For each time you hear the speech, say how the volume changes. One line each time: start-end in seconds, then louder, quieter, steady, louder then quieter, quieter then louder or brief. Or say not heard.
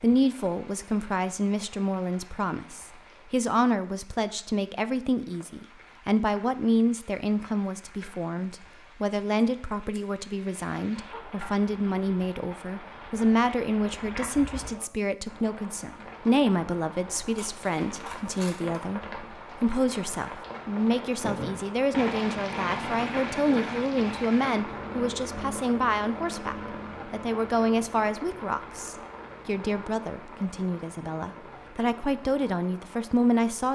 0.0-33.6 steady.